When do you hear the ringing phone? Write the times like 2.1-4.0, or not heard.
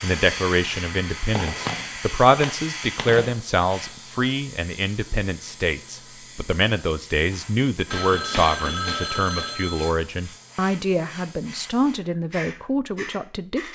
1.4-3.4, 7.9-9.9.